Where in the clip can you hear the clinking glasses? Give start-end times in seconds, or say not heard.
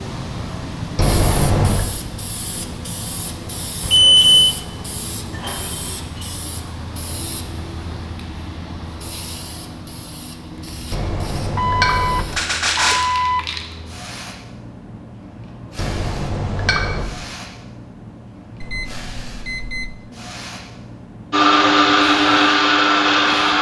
0.9-1.9, 10.9-12.2, 15.8-17.1.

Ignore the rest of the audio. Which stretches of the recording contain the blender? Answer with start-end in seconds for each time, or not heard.
21.3-23.5.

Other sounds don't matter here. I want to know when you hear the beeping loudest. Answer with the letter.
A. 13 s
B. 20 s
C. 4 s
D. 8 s
C.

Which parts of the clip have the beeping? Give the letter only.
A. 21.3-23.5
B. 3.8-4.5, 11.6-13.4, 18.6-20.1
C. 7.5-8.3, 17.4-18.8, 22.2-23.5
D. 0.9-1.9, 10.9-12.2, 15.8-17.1
B.